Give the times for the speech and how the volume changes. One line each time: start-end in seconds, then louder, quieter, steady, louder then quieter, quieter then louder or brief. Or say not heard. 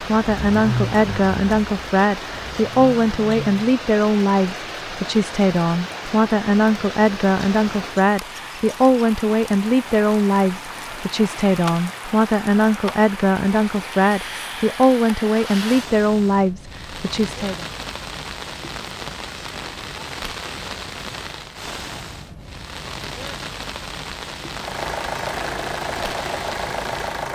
0.0-17.6 steady.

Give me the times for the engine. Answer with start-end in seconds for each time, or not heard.
0.2-3.8, 24.6-27.2.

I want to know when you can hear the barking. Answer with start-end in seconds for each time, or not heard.
not heard.